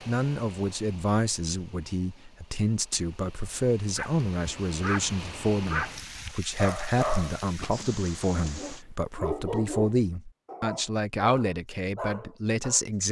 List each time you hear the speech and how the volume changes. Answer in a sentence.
You can hear the speech from 0.1 to 13.0 s, at a steady volume.